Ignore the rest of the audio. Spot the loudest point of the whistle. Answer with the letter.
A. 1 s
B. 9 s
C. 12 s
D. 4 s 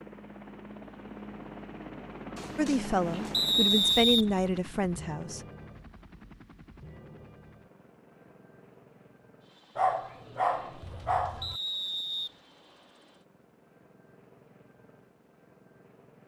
D.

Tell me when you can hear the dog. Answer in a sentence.
You can hear the dog from 2.4 to 4.0 s and from 9.8 to 11.6 s.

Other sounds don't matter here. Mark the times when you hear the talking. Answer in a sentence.
The talking can be heard from 2.5 to 5.4 s.